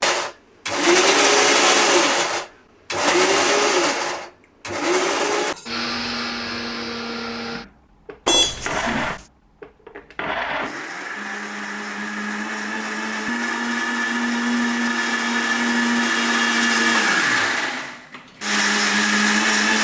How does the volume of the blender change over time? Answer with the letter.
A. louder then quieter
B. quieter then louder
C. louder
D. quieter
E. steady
B.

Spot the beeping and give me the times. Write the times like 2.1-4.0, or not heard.
8.2-9.2.